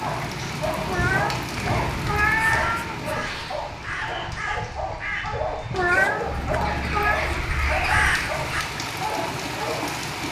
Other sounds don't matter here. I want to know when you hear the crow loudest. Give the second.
8 s.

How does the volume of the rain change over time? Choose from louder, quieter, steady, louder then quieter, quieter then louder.
quieter then louder.